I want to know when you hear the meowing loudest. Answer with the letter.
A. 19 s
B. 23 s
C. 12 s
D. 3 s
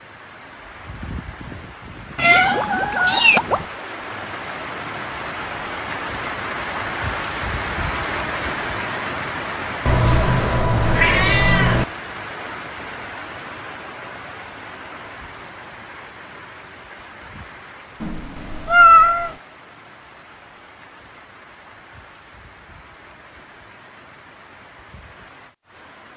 A.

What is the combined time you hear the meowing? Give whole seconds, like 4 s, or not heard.
5 s.